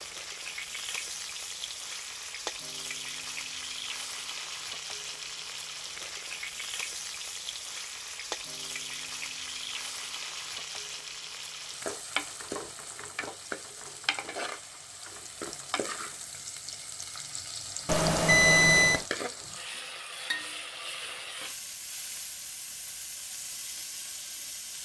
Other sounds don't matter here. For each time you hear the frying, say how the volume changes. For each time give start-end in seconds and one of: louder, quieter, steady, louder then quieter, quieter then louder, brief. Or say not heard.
0.0-24.8 steady.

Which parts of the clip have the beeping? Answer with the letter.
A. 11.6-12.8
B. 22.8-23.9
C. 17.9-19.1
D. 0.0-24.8
C.